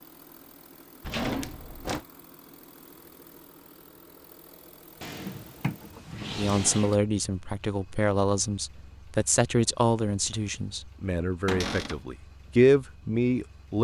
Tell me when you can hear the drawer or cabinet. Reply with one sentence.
You can hear the drawer or cabinet from 1.0 to 2.0 s, from 5.0 to 7.0 s and from 11.4 to 12.1 s.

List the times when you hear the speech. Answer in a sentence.
You can hear the speech from 6.3 to 13.7 s.